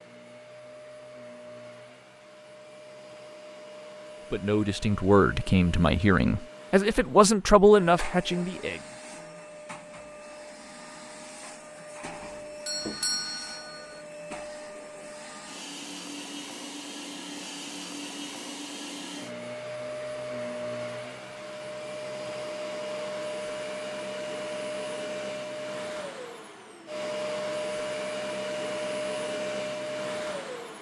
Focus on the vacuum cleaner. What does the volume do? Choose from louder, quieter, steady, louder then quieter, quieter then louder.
louder.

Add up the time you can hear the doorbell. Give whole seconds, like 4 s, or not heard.
2 s.